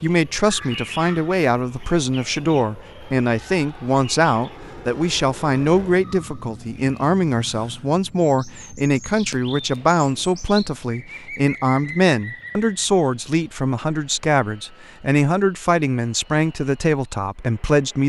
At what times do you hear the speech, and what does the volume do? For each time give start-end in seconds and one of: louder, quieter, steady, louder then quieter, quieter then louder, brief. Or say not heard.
0.0-18.0 steady.